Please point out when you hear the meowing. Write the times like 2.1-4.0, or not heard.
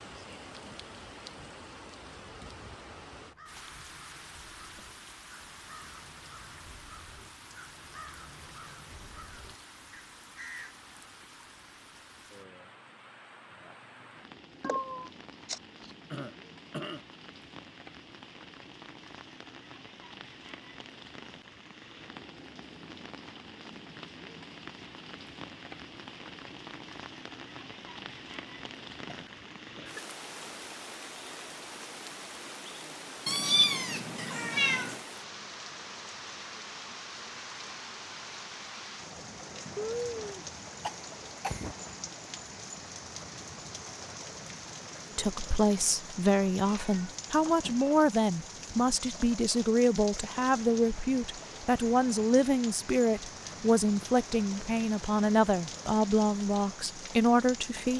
14.6-15.9, 33.2-35.0, 46.6-47.9.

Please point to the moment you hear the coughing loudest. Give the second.
40 s.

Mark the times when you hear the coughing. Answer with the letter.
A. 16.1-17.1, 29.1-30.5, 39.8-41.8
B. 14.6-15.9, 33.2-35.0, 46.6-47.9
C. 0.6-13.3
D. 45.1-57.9
A.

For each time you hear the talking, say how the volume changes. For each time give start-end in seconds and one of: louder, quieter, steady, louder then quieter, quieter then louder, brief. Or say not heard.
45.1-57.9 steady.